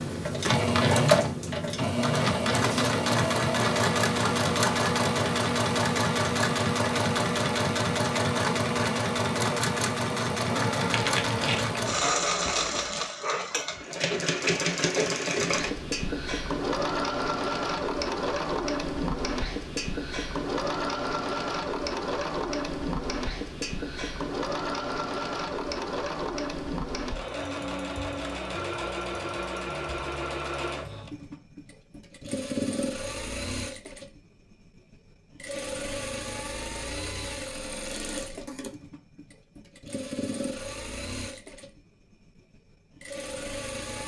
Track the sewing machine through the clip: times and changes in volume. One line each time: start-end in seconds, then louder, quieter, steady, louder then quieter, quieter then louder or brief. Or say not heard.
0.0-44.0 quieter.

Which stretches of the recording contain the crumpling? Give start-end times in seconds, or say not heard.
10.9-13.1.